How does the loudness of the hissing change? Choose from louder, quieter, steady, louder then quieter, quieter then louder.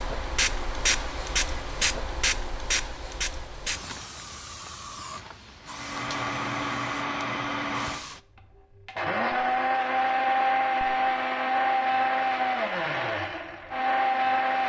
quieter.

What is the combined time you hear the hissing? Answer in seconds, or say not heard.
8 s.